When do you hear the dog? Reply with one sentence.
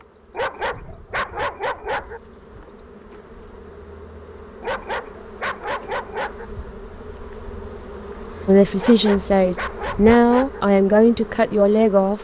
You can hear the dog from 0.3 to 2.2 s, from 4.6 to 6.5 s and from 8.8 to 10.7 s.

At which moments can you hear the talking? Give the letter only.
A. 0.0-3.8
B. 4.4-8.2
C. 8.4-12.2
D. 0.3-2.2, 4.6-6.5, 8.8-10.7
C.